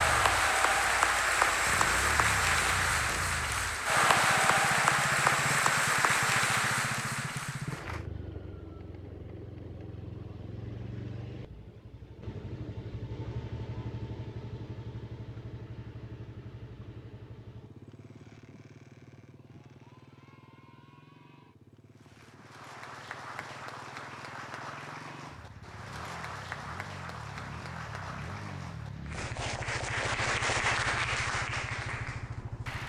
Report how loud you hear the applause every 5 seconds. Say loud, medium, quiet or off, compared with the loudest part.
loud, loud, off, off, quiet, quiet, medium.